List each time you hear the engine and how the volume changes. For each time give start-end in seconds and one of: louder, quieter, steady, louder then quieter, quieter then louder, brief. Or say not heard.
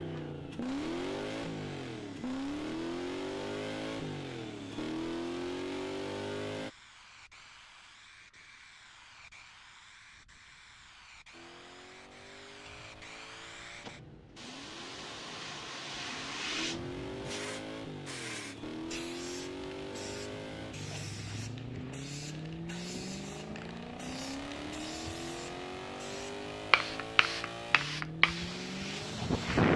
0.0-6.7 steady
11.3-29.6 louder.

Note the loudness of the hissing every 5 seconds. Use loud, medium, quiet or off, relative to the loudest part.
quiet, quiet, quiet, medium, quiet, loud.